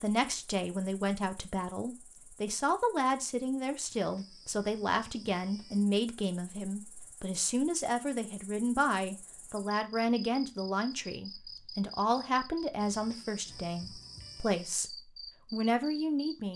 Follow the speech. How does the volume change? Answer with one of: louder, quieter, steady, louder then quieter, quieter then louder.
steady.